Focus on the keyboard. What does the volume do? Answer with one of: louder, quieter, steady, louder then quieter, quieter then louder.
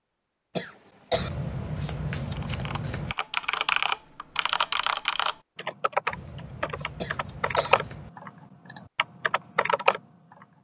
quieter.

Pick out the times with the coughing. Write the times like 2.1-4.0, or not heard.
0.6-1.3, 7.0-7.8.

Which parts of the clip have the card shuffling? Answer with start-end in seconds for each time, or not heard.
1.1-3.1, 6.1-8.1.